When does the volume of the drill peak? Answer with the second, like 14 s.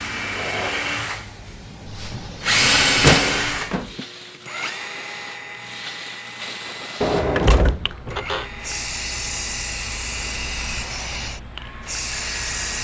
3 s.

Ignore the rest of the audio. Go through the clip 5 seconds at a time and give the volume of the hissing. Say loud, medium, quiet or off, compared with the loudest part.
medium, loud, loud.